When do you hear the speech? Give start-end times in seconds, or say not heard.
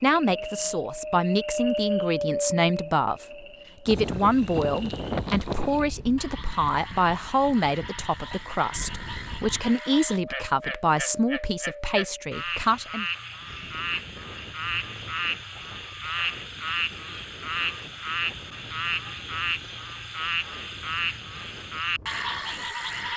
0.0-13.1.